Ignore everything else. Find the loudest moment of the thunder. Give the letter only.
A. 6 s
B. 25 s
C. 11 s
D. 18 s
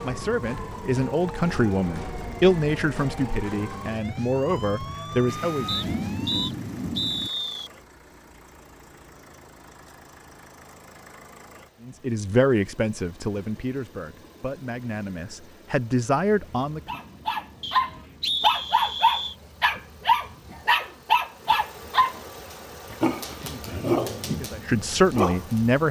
A.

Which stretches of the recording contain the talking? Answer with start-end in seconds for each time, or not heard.
0.0-5.9, 11.8-17.0, 23.2-25.8.